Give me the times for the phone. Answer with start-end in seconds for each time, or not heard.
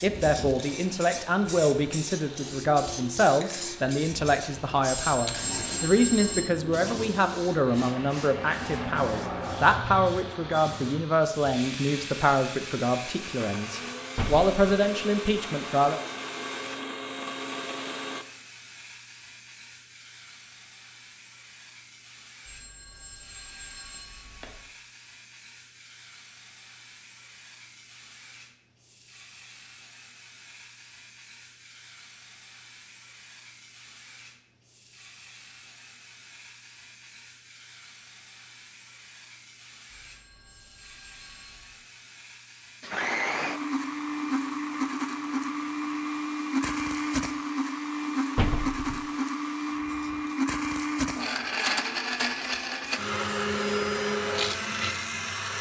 5.0-6.6, 22.4-24.6, 39.9-41.8.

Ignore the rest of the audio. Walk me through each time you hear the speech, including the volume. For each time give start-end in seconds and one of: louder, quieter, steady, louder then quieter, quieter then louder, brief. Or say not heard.
0.0-16.0 steady.